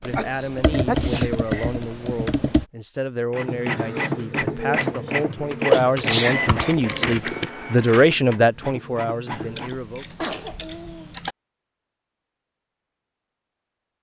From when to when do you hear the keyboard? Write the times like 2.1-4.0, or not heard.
0.0-2.6, 6.0-7.5, 9.3-11.3.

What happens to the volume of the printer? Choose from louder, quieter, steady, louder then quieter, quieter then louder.
quieter.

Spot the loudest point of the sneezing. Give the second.
6 s.